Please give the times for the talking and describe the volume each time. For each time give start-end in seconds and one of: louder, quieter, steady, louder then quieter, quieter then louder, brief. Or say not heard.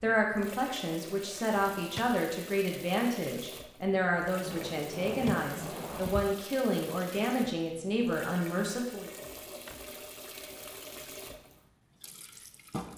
0.0-9.1 steady.